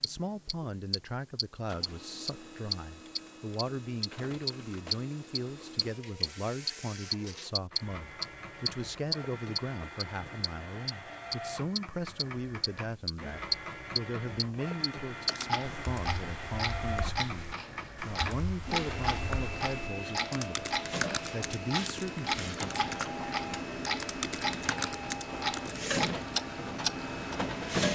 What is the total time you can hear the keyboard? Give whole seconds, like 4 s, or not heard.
11 s.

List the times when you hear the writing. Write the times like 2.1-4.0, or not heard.
not heard.